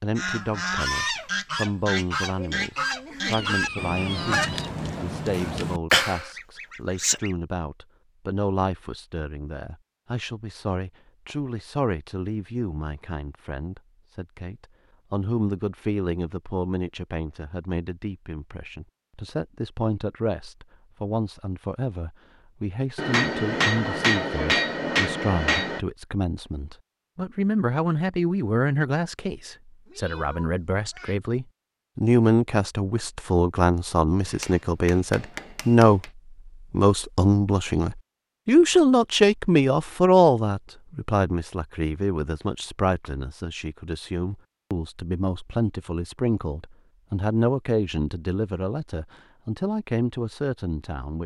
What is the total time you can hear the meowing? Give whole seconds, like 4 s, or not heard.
3 s.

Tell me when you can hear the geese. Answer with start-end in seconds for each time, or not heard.
0.1-7.3.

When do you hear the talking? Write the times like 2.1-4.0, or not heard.
0.0-36.0, 36.7-51.2.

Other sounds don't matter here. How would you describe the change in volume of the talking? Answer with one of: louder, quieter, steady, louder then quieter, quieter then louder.
louder then quieter.